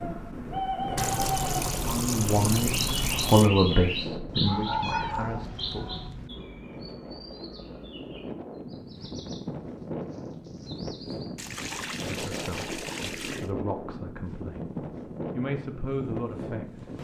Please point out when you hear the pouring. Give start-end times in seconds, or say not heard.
0.9-3.5, 11.3-13.5.